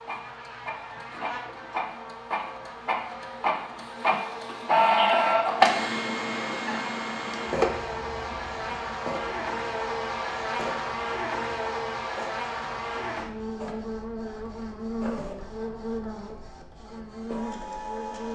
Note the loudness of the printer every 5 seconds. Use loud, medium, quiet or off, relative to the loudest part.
loud, loud, quiet, quiet.